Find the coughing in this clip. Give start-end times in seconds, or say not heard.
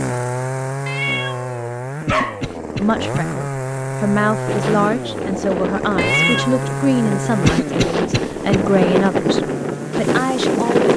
2.0-3.2, 7.5-8.6.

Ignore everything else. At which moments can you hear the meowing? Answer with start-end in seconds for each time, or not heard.
0.8-2.4, 6.0-6.7.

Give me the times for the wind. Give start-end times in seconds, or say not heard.
4.5-10.9.